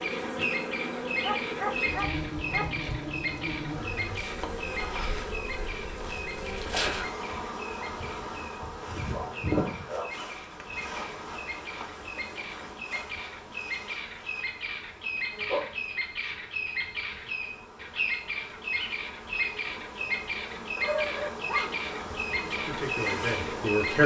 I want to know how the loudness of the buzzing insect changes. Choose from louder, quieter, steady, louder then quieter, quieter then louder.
quieter then louder.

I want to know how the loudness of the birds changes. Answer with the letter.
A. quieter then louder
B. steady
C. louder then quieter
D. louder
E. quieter
A.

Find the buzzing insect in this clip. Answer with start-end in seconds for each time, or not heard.
0.0-24.0.